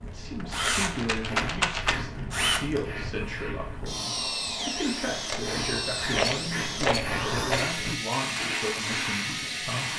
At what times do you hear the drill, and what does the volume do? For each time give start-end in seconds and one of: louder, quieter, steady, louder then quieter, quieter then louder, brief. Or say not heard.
0.0-9.9 steady.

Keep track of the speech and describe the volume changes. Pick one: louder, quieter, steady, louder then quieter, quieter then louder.
steady.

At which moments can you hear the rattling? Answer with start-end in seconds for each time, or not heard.
0.2-1.9, 6.1-7.7.